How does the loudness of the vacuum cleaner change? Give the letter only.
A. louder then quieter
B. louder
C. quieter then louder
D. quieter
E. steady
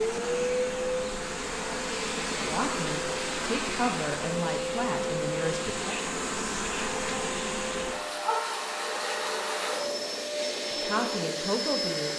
E.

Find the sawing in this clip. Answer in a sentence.
You can't hear the sawing here.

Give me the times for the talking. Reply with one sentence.
The talking can be heard from 2.3 to 6.0 s and from 10.7 to 12.1 s.